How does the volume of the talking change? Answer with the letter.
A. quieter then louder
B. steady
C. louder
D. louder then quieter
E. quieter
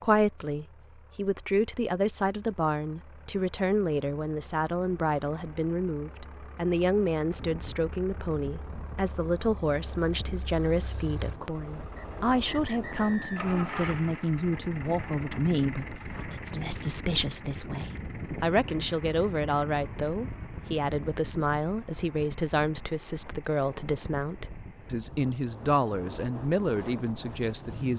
B.